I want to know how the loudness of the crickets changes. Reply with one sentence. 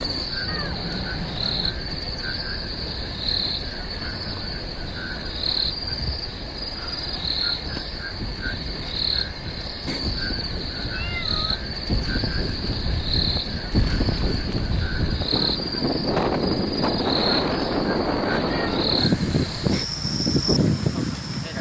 The volume of the crickets stays about the same.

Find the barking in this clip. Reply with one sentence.
You can't hear the barking here.